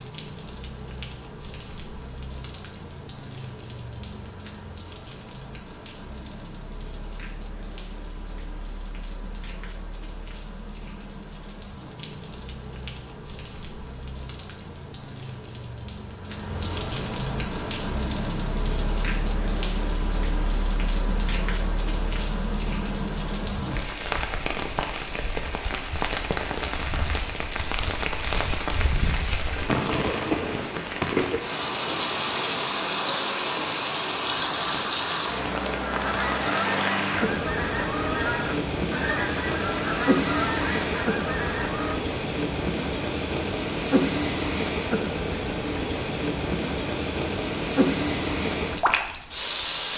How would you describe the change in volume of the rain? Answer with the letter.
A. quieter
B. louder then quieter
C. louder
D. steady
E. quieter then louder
C.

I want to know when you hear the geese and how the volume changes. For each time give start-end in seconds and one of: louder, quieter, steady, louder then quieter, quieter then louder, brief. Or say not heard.
35.8-42.0 steady.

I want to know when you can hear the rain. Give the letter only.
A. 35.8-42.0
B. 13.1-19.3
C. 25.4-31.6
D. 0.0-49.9
D.